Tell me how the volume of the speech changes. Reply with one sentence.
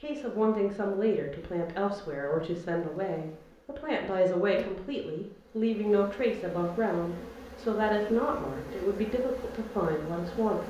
The loudness of the speech stays about the same.